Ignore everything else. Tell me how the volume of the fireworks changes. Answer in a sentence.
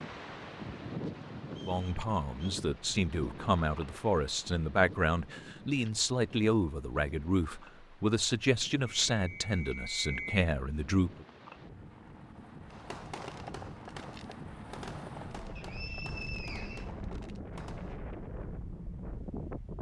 The loudness of the fireworks goes down.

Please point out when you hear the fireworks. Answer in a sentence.
The fireworks can be heard from 12.7 to 18.1 s.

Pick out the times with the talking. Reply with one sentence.
You can hear the talking from 1.6 to 11.2 s.